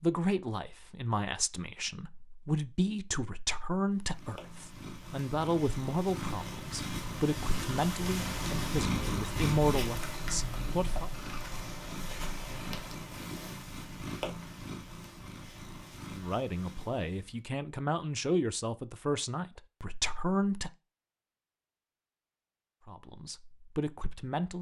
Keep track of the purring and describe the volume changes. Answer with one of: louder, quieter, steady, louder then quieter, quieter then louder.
louder then quieter.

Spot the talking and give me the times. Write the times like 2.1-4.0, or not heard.
0.0-11.1, 16.1-20.8, 22.9-24.5.